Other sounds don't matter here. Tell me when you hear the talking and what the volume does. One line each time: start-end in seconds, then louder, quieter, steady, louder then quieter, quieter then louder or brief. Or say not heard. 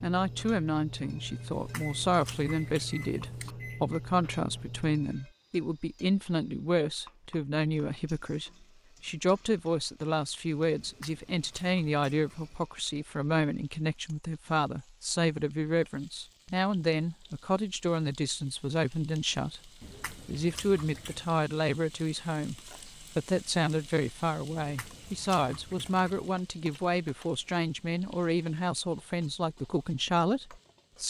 0.0-31.0 steady.